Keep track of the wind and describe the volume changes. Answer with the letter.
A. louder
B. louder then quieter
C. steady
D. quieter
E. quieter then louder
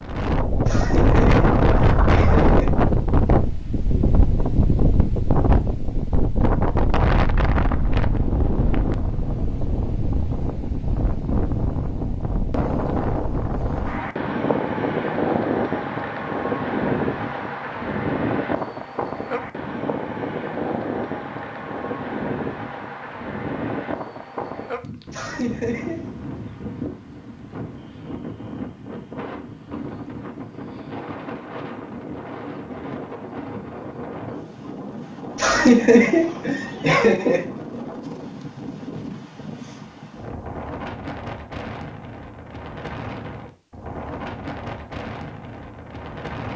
D.